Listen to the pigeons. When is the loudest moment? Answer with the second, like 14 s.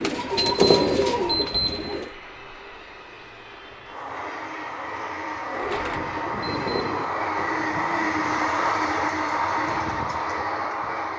1 s.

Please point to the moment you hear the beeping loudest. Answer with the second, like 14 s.
1 s.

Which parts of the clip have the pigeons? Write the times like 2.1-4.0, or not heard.
0.0-2.1, 5.5-8.2.